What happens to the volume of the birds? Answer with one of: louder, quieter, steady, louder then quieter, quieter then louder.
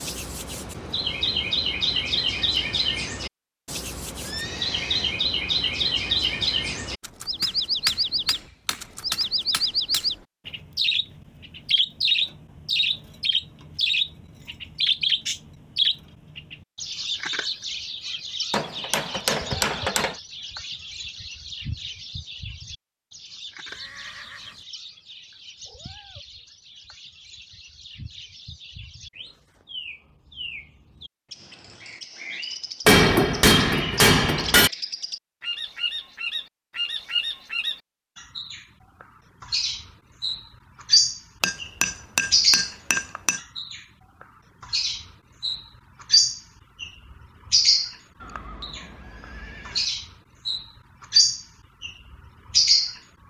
quieter then louder.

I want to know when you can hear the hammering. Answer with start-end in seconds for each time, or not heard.
7.4-10.1, 18.5-20.1, 32.9-34.7, 41.4-43.4.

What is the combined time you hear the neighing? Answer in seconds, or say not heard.
4 s.